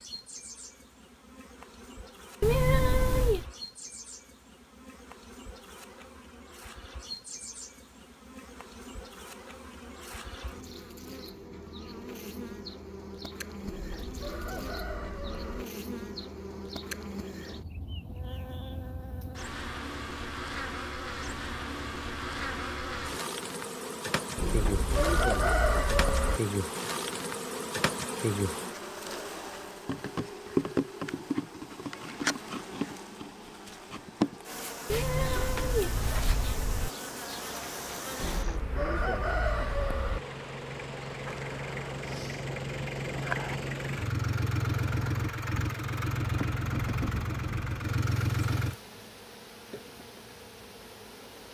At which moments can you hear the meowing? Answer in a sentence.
You can hear the meowing from 2.4 to 3.5 s and from 34.9 to 36.9 s.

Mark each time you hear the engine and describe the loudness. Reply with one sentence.
The engine can be heard from 37.5 to 48.8 s, getting louder.